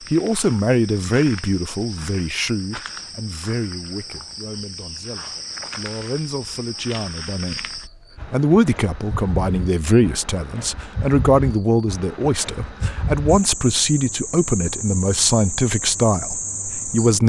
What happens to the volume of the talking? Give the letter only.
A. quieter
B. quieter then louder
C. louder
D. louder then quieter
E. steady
B.